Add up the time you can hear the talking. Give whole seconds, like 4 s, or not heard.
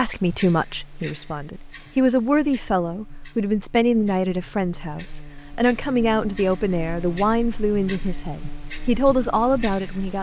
10 s.